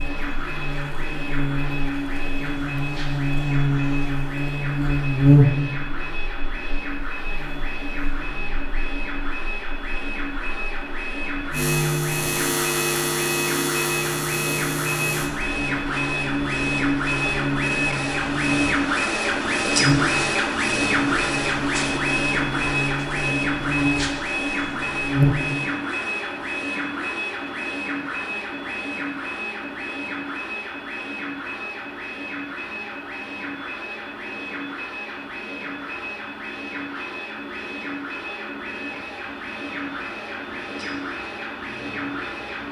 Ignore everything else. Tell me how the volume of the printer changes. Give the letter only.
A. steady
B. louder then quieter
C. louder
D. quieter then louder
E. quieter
B.